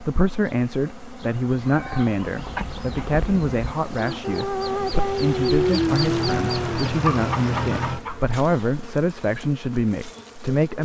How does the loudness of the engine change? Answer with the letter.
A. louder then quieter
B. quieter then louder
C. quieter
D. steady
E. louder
A.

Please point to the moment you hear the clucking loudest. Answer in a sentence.
The volume of the clucking peaks at 6 seconds.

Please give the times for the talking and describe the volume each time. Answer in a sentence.
The talking can be heard from 0.0 to 10.8 s, at a steady volume.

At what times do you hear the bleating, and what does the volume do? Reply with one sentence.
The bleating can't be heard in this clip.